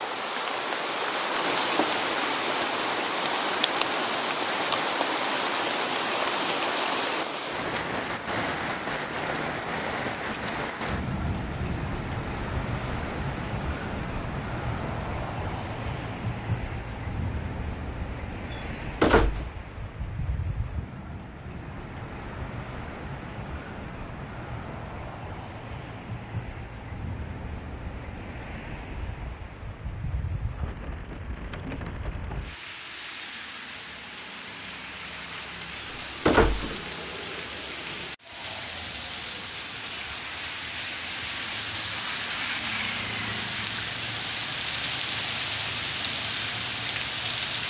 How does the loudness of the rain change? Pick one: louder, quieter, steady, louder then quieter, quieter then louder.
quieter then louder.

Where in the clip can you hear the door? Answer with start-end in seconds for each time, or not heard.
18.5-19.4, 35.8-36.8.